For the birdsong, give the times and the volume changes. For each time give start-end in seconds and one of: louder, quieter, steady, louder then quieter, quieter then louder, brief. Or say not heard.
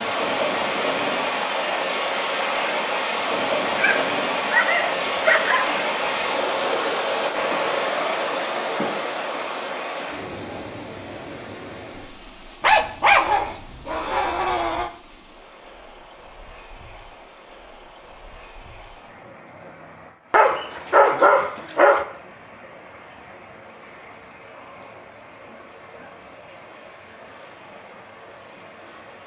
not heard.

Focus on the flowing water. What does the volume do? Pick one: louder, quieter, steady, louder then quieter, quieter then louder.
quieter.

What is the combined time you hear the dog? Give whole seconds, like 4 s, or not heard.
7 s.